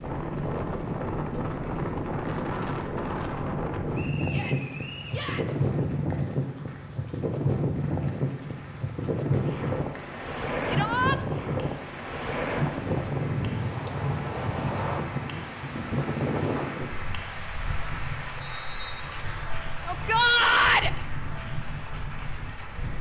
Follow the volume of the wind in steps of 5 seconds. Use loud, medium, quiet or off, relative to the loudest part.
loud, loud, loud, medium, medium.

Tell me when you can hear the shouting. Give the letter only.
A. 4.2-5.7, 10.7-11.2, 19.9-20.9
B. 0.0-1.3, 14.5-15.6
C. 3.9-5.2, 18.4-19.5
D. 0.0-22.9
A.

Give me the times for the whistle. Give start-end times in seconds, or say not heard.
3.9-5.2, 18.4-19.5.